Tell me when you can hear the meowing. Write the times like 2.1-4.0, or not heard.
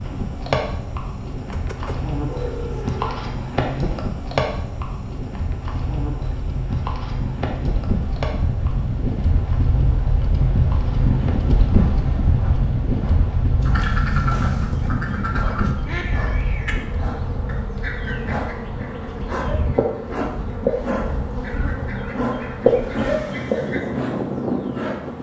1.5-3.2, 15.9-16.8.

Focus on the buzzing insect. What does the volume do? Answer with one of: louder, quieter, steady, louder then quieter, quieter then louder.
quieter then louder.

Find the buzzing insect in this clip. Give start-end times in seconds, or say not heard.
0.0-25.1.